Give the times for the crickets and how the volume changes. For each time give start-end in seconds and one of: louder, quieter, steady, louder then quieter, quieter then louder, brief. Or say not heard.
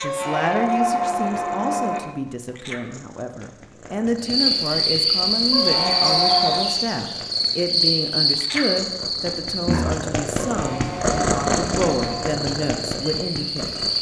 4.2-13.9 quieter then louder.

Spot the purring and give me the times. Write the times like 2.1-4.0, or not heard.
0.0-13.9.